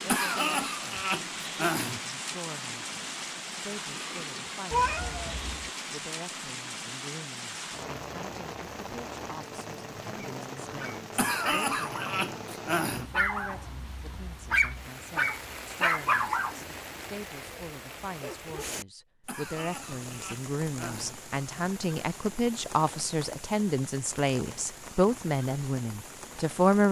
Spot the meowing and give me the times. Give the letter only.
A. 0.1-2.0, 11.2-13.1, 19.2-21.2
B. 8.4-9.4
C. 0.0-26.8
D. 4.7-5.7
D.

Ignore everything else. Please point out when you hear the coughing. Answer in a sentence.
The coughing can be heard from 0.1 to 2.0 s, from 11.2 to 13.1 s and from 19.2 to 21.2 s.